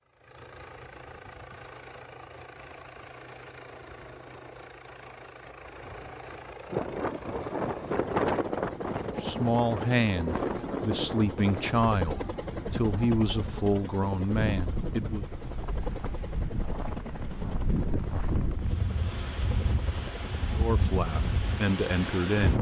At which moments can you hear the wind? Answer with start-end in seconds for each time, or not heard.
6.7-22.5.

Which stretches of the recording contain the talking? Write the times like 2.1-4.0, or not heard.
9.2-15.2, 20.6-22.5.